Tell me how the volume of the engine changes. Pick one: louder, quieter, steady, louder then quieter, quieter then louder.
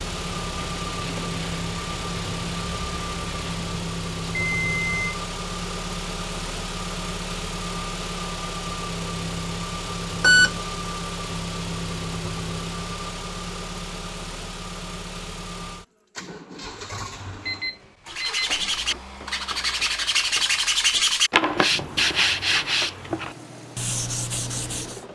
quieter.